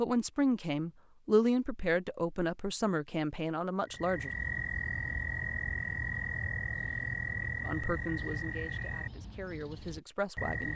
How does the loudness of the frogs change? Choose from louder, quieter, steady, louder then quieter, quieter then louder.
quieter.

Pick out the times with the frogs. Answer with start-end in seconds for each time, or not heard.
3.9-10.7.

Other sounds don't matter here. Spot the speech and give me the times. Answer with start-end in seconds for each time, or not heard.
0.0-4.3, 7.7-10.7.